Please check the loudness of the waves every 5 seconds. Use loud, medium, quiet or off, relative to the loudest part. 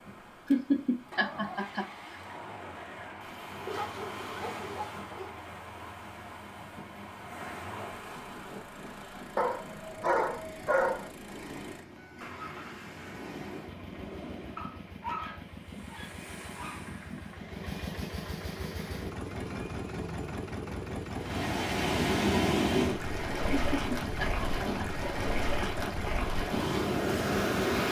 quiet, quiet, quiet, quiet, loud, loud.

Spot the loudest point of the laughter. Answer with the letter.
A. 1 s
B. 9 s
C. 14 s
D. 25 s
A.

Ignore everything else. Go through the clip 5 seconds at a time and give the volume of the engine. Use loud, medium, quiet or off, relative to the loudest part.
medium, medium, medium, loud, loud, loud.